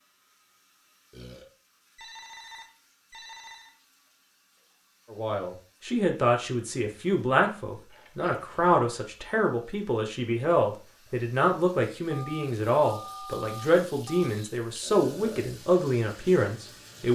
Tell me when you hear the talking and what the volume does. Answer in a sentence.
You can hear the talking from 5.1 to 17.1 s, at a steady volume.